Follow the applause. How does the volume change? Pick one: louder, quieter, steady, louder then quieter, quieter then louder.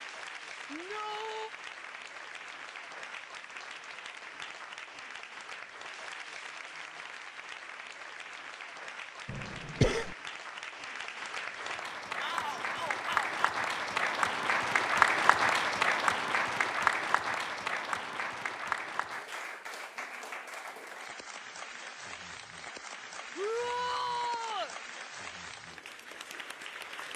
louder then quieter.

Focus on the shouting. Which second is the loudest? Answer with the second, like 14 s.
24 s.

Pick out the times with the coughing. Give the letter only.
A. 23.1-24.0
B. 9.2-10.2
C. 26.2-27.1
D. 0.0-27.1
B.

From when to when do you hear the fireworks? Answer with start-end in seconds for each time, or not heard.
not heard.